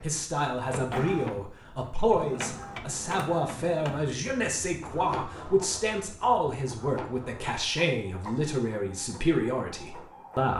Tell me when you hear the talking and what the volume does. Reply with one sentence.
You can hear the talking from 0.0 to 10.5 s, at a steady volume.